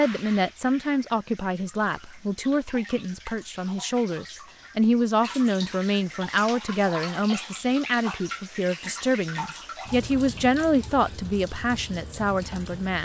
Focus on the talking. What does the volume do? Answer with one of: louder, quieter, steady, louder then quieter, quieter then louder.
steady.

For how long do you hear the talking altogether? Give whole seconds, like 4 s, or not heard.
13 s.